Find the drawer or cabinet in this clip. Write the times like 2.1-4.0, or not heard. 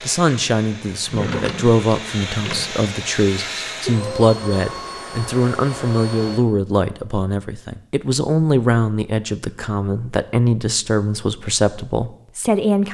1.1-2.8.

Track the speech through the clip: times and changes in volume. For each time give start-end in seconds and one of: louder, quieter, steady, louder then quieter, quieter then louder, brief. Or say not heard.
0.0-12.8 steady.